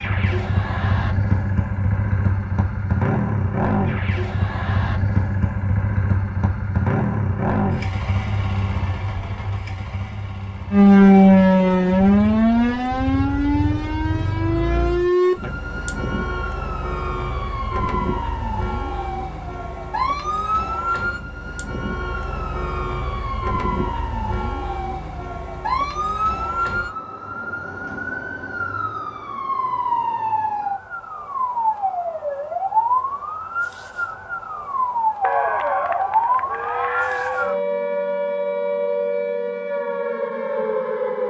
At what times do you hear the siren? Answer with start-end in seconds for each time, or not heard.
10.7-41.2.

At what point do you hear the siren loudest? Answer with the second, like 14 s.
11 s.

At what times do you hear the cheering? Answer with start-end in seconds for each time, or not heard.
35.2-37.6.